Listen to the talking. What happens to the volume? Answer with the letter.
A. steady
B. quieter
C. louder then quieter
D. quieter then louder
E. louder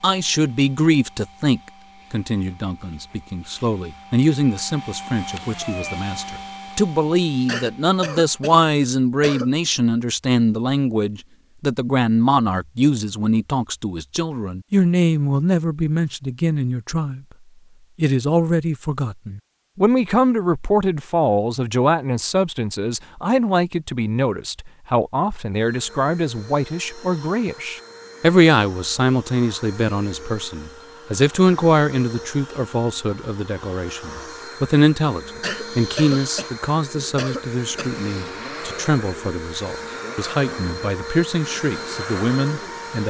A.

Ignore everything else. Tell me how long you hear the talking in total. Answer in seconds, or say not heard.
42 s.